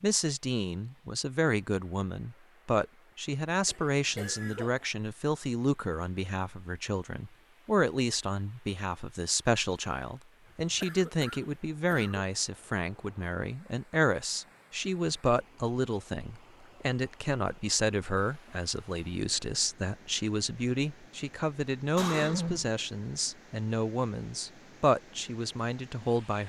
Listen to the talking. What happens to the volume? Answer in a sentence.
The volume of the talking stays about the same.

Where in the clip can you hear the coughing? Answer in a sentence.
You can hear the coughing from 3.6 to 4.8 s, from 10.6 to 12.2 s and from 21.9 to 22.7 s.